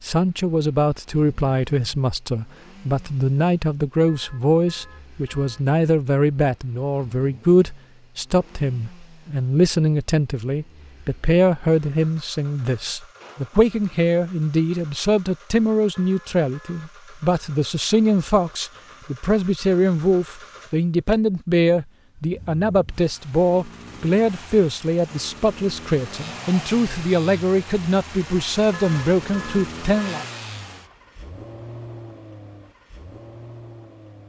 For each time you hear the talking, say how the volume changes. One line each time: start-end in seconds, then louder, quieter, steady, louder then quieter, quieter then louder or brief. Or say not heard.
0.0-30.2 steady.